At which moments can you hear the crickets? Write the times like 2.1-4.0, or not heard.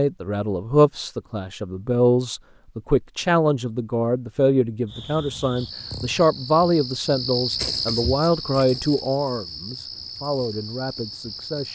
4.8-11.6.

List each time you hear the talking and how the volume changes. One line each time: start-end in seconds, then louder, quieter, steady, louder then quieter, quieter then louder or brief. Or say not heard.
0.0-11.6 quieter.